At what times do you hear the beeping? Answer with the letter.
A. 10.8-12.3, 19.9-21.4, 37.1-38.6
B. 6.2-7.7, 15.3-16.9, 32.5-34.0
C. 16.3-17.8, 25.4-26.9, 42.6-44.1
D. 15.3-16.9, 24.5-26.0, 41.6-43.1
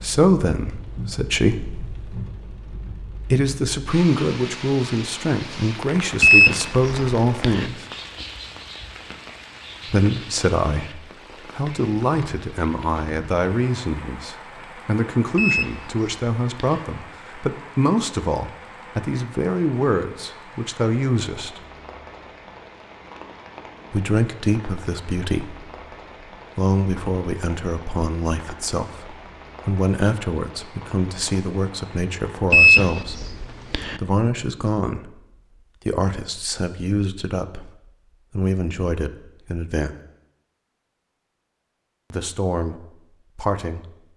B.